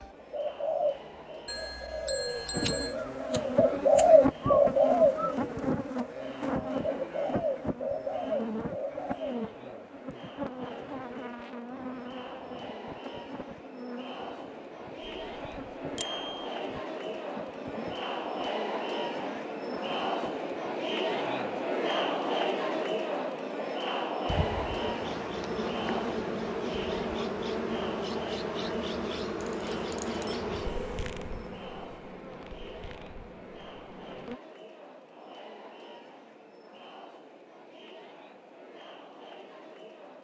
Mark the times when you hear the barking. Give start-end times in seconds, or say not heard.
not heard.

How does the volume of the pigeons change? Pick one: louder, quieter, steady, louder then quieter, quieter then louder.
louder then quieter.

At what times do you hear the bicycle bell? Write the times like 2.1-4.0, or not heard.
1.4-3.0, 15.1-16.4, 29.4-30.4.